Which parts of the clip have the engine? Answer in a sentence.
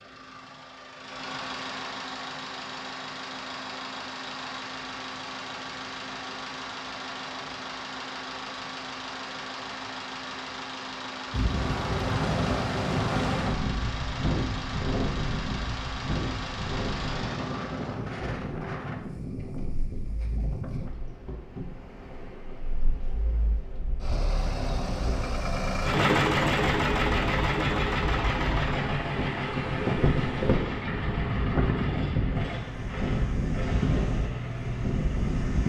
The engine can be heard from 0.0 to 35.6 s.